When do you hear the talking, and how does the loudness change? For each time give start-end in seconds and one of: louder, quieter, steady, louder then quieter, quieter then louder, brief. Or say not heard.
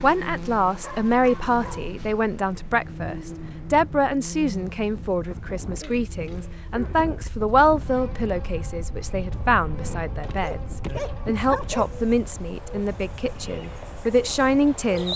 0.0-15.1 steady.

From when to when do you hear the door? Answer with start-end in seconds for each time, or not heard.
not heard.